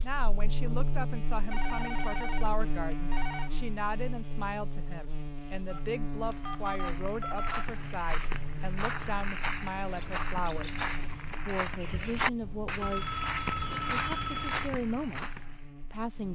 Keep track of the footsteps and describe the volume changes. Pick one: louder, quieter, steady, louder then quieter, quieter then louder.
louder.